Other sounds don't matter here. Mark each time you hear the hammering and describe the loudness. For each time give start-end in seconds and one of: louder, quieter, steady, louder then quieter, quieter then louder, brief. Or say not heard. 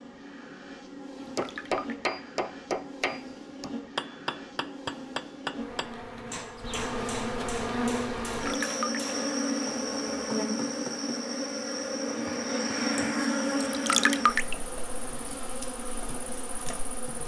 1.4-11.2 quieter.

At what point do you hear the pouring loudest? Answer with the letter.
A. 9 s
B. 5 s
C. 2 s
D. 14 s
D.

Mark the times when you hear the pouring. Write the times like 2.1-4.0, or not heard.
1.2-2.1, 8.4-9.0, 13.6-14.6.